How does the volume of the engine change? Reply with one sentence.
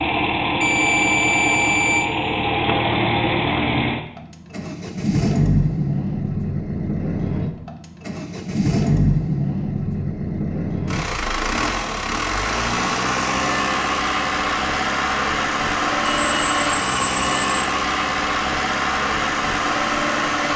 The loudness of the engine stays about the same.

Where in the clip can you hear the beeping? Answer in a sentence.
The beeping can be heard from 0.6 to 2.1 s and from 16.1 to 17.6 s.